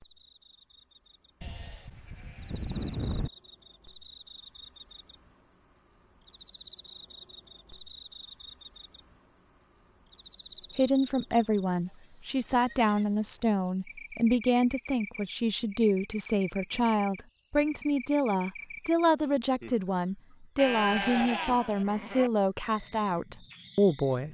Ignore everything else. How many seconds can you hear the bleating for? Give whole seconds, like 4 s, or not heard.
5 s.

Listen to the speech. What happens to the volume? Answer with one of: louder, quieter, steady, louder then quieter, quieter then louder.
steady.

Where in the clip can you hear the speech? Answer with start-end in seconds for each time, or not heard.
10.8-24.3.